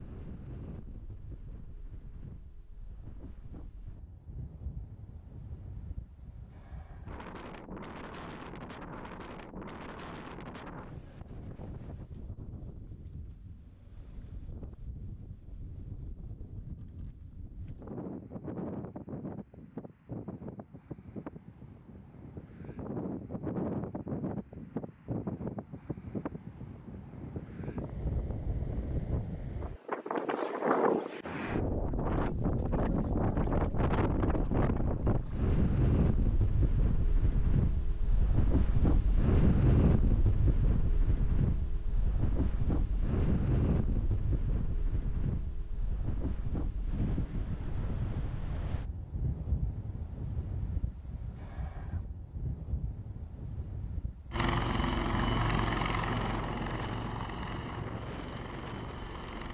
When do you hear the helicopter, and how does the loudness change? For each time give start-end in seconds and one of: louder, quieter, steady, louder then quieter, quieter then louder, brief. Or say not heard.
54.3-59.5 quieter.